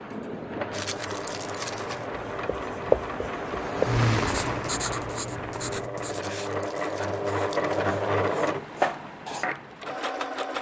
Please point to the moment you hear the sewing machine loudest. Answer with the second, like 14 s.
8 s.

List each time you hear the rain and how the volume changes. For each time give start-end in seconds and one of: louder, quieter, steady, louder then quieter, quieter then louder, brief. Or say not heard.
0.0-5.9 louder then quieter.